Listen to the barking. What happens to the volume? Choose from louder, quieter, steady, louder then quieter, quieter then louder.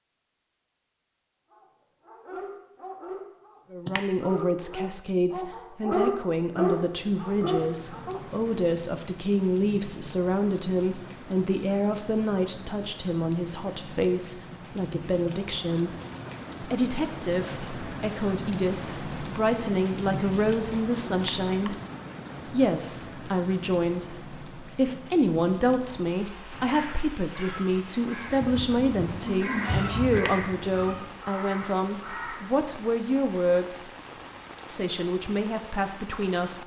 louder.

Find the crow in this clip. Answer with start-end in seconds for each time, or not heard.
26.4-32.6.